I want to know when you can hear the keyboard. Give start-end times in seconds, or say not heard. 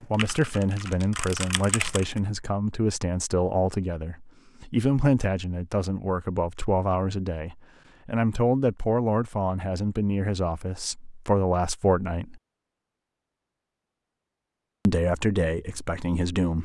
0.0-2.2.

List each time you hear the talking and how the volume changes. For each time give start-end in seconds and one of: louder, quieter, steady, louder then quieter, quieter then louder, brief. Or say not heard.
0.1-12.4 steady
14.8-16.6 brief.